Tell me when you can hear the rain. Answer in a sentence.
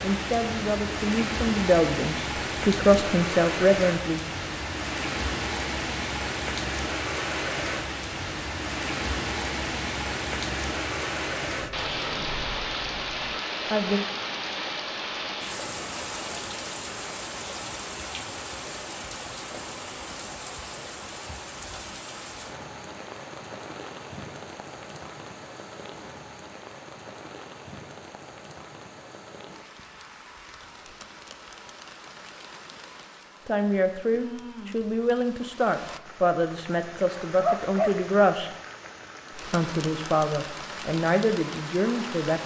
The rain can be heard from 0.0 to 42.4 s.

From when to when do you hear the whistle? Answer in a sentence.
The whistle can't be heard in this clip.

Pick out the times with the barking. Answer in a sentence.
The barking can be heard from 36.7 to 38.1 s.